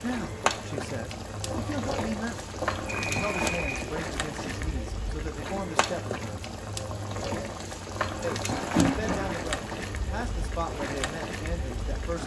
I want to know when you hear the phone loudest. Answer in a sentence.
The loudest moment of the phone is at 9 seconds.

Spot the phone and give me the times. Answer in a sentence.
The phone can be heard from 1.4 to 3.9 s and from 8.5 to 9.4 s.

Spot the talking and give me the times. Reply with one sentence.
You can hear the talking from 0.0 to 6.4 s and from 8.2 to 12.2 s.